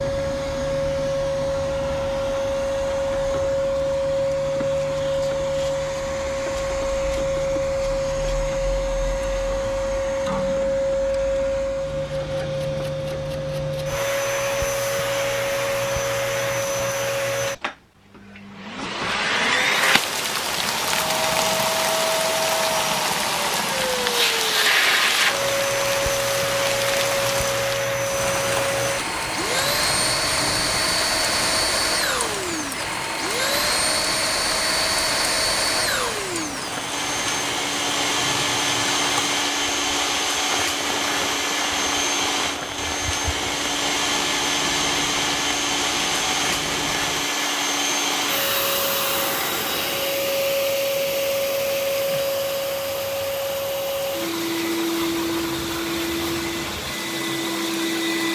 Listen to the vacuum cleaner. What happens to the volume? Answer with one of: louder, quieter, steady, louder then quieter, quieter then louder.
steady.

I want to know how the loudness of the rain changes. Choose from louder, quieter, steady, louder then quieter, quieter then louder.
quieter.